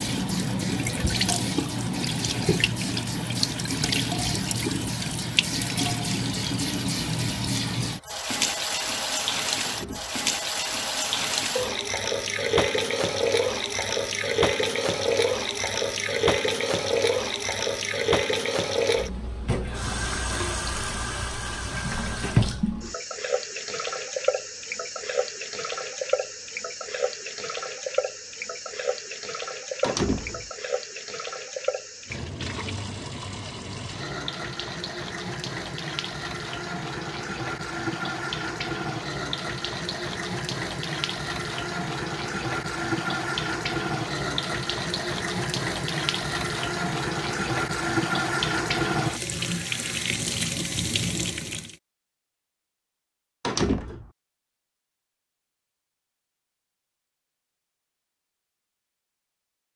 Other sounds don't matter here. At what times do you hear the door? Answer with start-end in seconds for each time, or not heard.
9.7-10.3, 29.8-30.5, 53.4-54.1.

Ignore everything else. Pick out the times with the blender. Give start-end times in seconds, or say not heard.
not heard.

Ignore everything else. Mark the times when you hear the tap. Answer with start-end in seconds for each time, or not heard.
0.0-51.8.